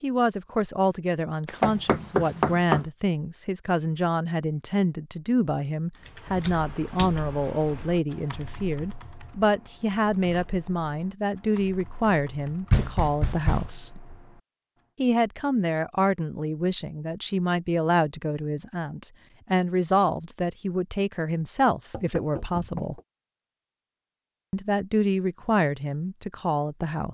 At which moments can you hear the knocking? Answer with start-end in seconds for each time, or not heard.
1.4-2.9, 12.7-13.7, 21.9-23.0.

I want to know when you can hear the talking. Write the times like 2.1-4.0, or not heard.
0.0-14.0, 14.9-23.0, 24.5-27.0.